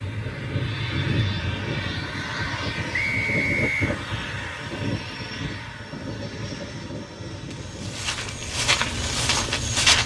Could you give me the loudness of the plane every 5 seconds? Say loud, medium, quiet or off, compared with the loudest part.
loud, medium.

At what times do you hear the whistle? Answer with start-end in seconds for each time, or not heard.
2.9-4.0.